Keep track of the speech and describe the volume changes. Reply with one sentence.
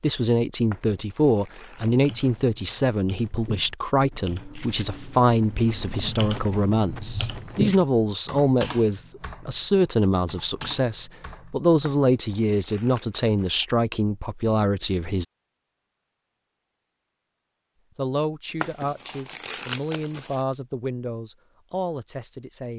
The volume of the speech goes down.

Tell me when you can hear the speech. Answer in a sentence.
The speech can be heard from 0.0 to 15.2 s and from 17.9 to 22.7 s.